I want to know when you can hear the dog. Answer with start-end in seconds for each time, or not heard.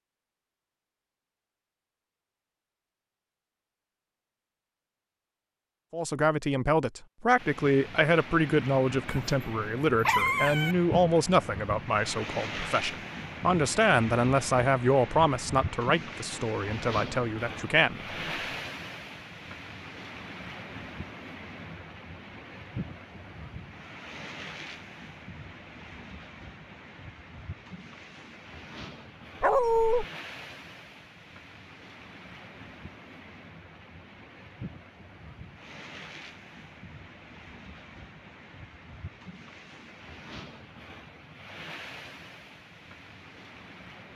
9.1-10.8, 29.4-30.1.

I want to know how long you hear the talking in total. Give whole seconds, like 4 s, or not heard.
12 s.